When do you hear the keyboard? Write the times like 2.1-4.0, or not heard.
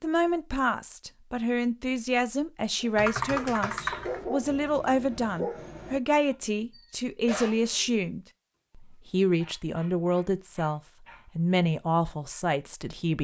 3.0-4.2.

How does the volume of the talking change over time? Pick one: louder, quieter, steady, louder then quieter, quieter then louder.
steady.